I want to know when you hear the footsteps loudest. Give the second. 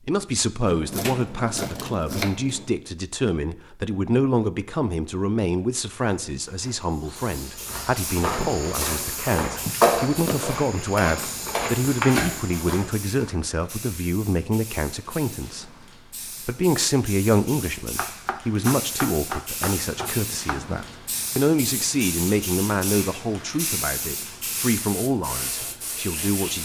10 s.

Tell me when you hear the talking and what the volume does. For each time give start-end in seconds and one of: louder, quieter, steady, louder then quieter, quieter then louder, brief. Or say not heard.
0.1-26.5 steady.